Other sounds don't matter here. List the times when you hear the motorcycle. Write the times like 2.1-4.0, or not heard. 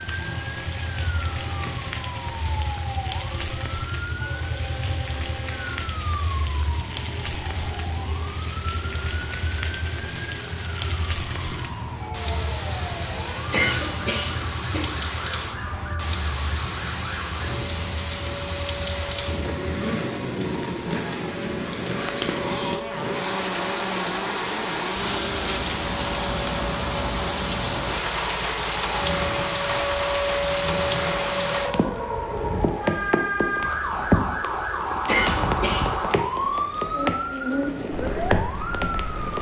0.0-31.8.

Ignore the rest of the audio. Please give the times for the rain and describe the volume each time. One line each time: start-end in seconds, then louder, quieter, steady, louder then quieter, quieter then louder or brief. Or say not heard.
0.0-39.3 louder.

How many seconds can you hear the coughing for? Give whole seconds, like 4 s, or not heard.
2 s.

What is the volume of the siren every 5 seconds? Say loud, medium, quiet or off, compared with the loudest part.
medium, medium, medium, medium, medium, medium, loud, loud.